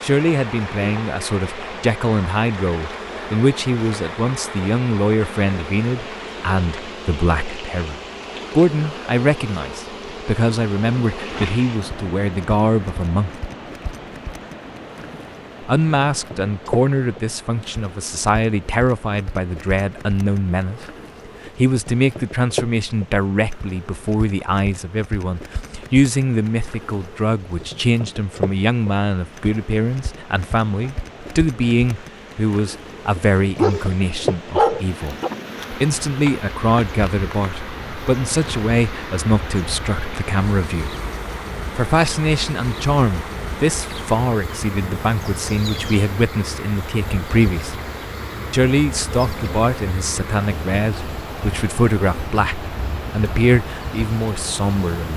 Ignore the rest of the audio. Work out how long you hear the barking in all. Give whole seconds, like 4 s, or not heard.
2 s.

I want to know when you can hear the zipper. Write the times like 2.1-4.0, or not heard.
not heard.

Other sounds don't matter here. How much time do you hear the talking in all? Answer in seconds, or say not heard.
51 s.